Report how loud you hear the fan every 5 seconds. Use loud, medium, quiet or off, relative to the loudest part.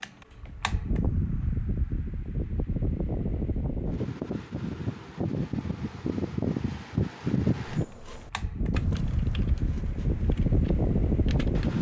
medium, loud, loud.